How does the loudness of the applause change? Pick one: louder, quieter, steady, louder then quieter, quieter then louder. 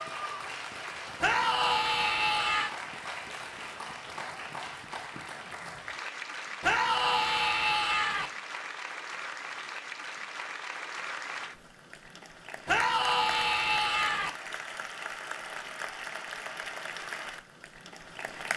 steady.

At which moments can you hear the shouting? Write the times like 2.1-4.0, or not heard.
1.2-2.7, 6.6-8.3, 12.7-14.3.